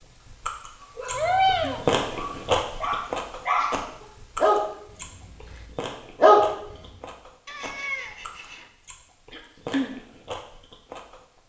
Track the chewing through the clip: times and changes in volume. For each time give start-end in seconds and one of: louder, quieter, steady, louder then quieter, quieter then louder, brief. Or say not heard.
0.0-11.4 quieter then louder.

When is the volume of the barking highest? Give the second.
6 s.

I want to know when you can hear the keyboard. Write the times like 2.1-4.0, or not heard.
not heard.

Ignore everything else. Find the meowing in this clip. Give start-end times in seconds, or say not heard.
1.1-1.9, 7.5-8.7.